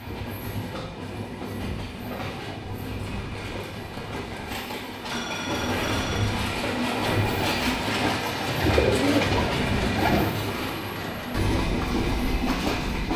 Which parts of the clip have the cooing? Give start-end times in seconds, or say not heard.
7.8-10.2.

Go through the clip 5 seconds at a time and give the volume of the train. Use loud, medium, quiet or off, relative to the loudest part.
medium, loud, loud.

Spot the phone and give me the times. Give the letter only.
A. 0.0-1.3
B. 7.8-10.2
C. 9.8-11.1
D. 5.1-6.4
D.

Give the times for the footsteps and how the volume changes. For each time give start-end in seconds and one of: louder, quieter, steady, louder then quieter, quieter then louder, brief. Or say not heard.
not heard.